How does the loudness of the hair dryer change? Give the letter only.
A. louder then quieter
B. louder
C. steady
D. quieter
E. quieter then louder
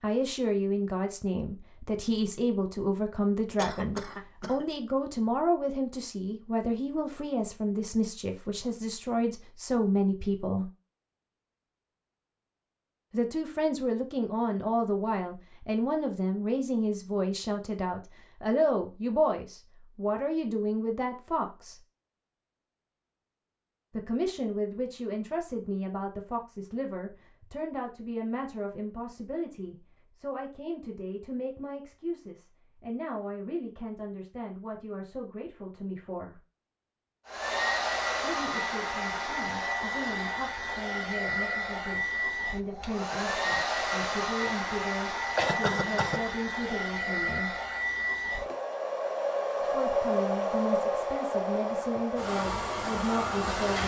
C.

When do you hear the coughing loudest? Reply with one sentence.
The volume of the coughing peaks at 46 seconds.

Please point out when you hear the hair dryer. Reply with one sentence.
You can hear the hair dryer from 37.2 to 53.8 s.